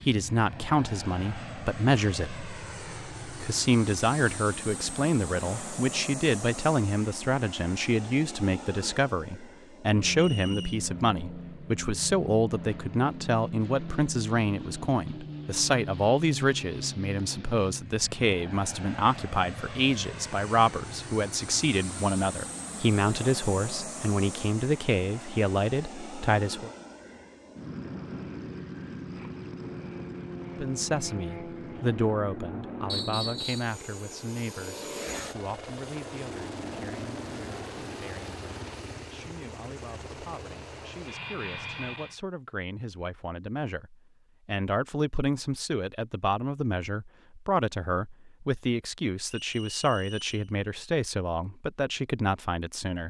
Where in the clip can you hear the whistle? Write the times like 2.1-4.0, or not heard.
10.2-10.8, 32.9-33.8, 49.4-50.5.